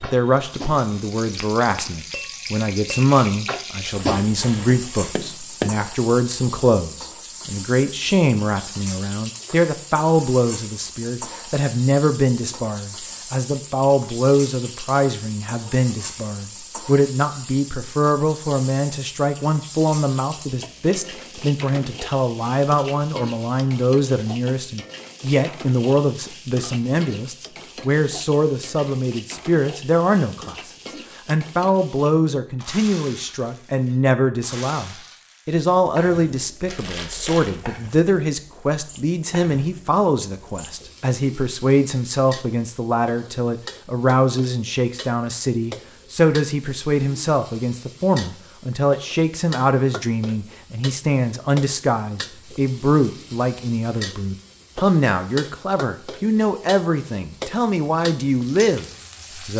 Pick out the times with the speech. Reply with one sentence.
The speech can be heard from 0.0 to 59.5 s.